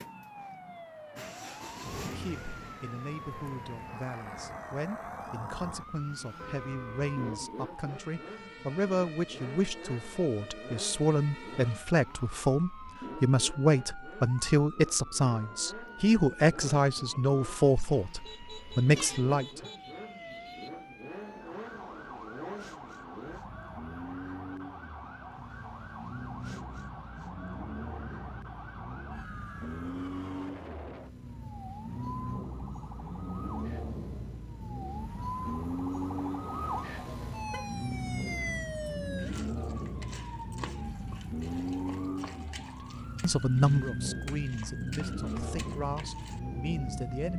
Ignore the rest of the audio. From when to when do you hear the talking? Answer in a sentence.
The talking can be heard from 1.9 to 19.6 s and from 43.2 to 47.3 s.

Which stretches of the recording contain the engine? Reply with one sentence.
The engine can be heard from 0.0 to 47.3 s.